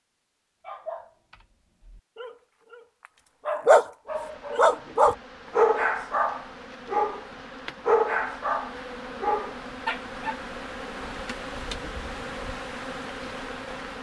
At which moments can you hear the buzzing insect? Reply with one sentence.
The buzzing insect can be heard from 4.0 to 13.9 s.